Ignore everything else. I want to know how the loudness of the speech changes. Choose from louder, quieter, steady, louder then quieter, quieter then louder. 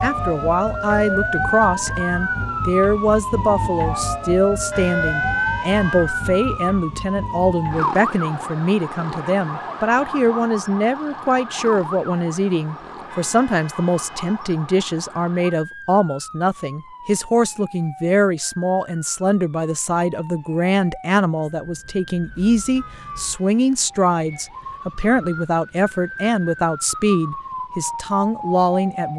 steady.